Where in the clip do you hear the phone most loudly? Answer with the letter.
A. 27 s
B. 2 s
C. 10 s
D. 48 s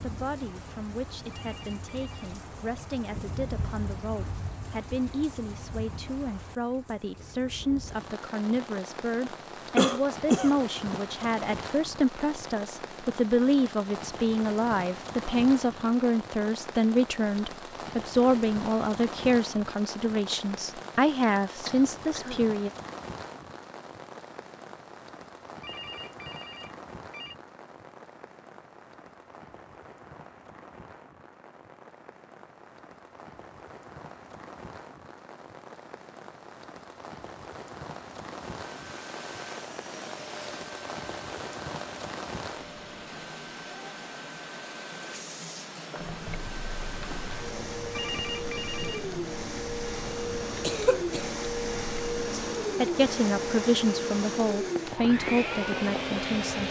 D.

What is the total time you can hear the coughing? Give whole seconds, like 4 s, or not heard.
3 s.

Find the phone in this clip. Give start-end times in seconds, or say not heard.
1.3-2.3, 25.6-27.4, 47.9-49.0.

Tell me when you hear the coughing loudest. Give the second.
10 s.